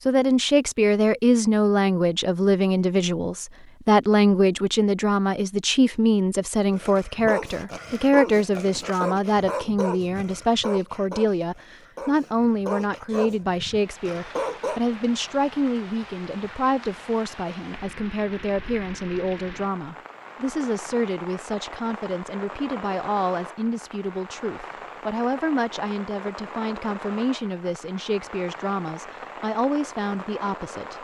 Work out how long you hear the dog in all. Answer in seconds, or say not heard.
8 s.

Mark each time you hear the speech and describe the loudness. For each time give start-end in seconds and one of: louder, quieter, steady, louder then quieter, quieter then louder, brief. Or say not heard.
0.1-30.9 quieter.